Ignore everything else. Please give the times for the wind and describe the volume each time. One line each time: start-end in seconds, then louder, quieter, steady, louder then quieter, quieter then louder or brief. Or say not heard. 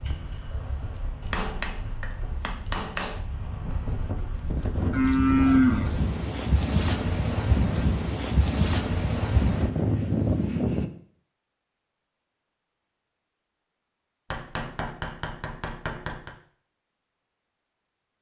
0.0-10.9 louder.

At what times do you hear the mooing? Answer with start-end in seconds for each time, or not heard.
4.9-5.9.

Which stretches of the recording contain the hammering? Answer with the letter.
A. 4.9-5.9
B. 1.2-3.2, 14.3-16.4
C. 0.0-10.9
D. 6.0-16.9
B.